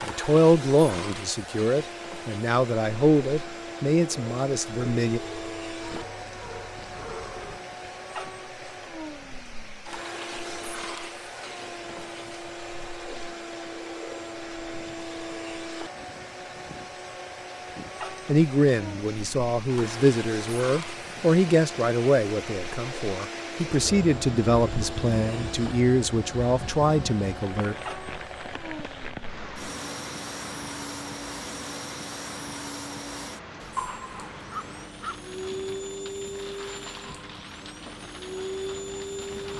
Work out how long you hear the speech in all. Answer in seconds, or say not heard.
15 s.